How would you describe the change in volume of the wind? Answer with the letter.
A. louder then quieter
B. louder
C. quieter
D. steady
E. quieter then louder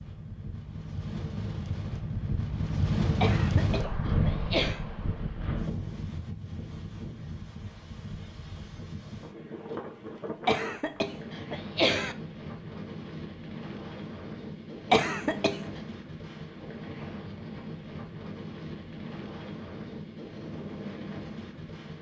C.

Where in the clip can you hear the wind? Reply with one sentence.
You can hear the wind from 0.0 to 21.9 s.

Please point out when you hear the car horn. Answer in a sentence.
The car horn can't be heard in this clip.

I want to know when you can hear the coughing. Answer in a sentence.
The coughing can be heard from 3.2 to 4.8 s, from 10.4 to 12.2 s and from 14.9 to 15.6 s.